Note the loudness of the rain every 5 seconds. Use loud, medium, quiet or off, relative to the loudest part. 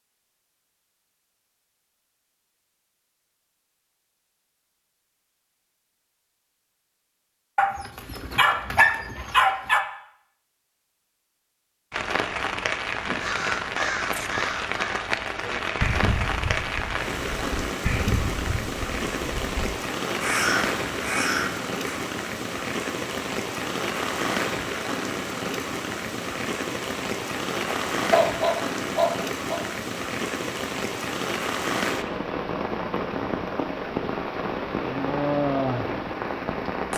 off, off, loud, loud, loud, loud, loud, loud.